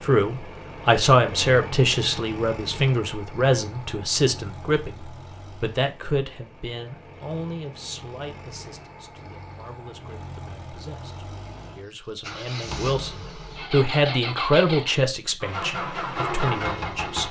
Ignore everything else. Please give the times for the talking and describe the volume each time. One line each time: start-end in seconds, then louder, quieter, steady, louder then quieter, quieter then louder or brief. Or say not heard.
0.0-17.2 quieter then louder.